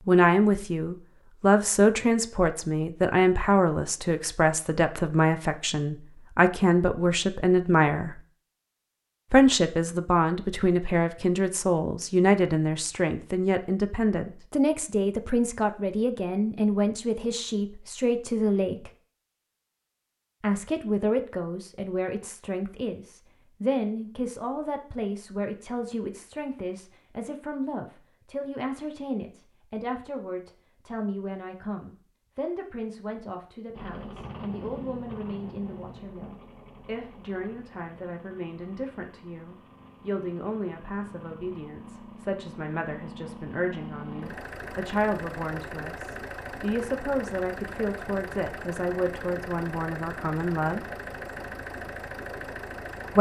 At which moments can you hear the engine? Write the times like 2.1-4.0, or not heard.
33.7-53.1.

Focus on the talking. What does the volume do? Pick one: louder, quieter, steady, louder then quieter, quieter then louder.
quieter then louder.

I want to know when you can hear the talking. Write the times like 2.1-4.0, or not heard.
0.1-8.2, 9.3-18.9, 20.4-50.9.